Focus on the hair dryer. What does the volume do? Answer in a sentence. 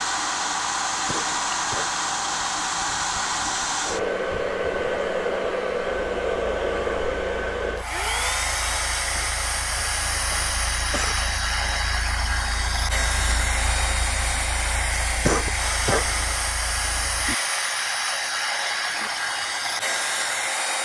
The volume of the hair dryer stays about the same.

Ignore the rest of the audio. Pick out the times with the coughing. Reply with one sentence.
You can hear the coughing from 1.1 to 1.9 s, from 9.2 to 11.2 s and from 15.2 to 16.1 s.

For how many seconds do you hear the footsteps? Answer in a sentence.
You can't hear the footsteps here.